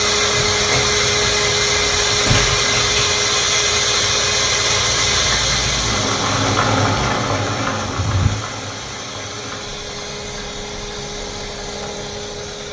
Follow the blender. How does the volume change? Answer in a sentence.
The volume of the blender goes down.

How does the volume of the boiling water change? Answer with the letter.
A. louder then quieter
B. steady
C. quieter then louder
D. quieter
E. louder
A.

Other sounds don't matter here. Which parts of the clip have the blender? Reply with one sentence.
The blender can be heard from 0.0 to 12.6 s.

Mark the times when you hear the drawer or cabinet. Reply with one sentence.
The drawer or cabinet can be heard from 0.3 to 3.0 s and from 7.8 to 8.4 s.